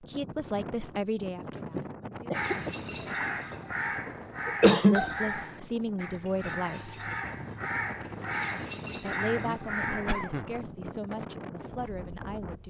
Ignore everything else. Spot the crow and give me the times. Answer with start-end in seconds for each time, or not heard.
2.3-10.2.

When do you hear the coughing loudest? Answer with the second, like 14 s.
5 s.